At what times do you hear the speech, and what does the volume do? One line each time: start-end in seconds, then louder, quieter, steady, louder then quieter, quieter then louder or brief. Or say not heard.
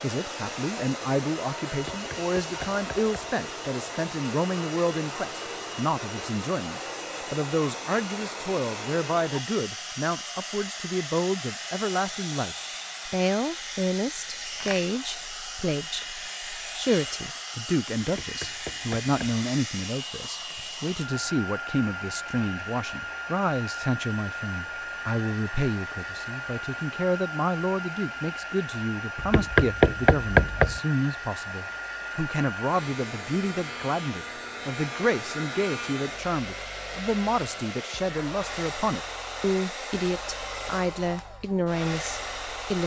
0.0-42.8 steady.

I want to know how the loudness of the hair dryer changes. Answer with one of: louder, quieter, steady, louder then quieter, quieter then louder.
steady.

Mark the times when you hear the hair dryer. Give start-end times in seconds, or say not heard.
0.0-42.8.